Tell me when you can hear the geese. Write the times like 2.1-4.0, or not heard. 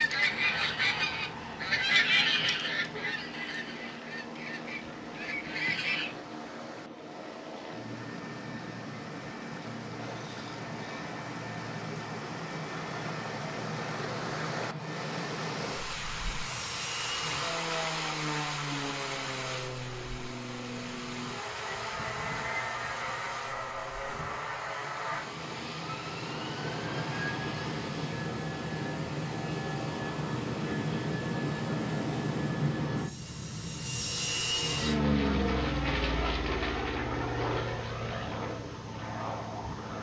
0.0-6.2.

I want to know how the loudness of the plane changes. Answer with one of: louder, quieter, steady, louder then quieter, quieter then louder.
louder.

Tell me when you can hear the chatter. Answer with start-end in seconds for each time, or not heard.
not heard.